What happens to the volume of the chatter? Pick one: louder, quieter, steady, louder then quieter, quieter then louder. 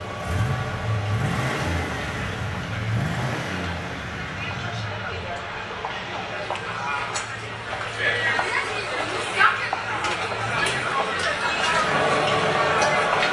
louder.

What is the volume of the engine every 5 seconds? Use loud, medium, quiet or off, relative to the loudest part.
loud, quiet, medium.